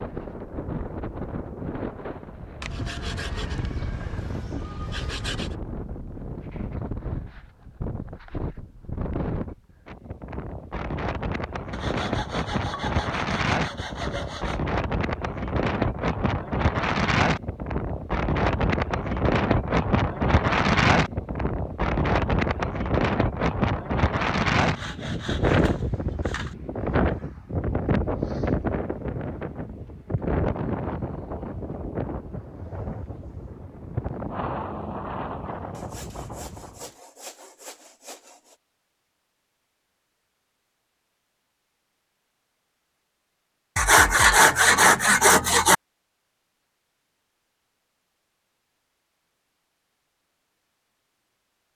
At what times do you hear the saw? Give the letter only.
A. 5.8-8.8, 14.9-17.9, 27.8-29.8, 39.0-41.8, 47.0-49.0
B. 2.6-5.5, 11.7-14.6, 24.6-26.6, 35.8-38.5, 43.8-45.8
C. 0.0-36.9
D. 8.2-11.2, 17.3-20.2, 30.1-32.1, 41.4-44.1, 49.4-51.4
B.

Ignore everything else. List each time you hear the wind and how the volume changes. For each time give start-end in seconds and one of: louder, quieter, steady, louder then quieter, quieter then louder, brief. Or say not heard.
0.0-36.9 louder then quieter.